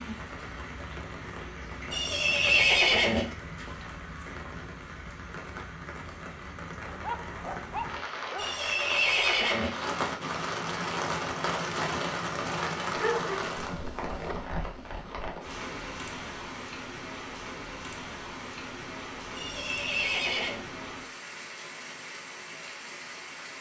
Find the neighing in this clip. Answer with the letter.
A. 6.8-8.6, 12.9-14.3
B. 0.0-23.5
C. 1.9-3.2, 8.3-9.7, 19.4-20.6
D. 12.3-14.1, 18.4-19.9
C.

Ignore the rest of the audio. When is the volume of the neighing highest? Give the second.
3 s.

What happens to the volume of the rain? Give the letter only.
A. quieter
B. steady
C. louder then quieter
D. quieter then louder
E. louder
C.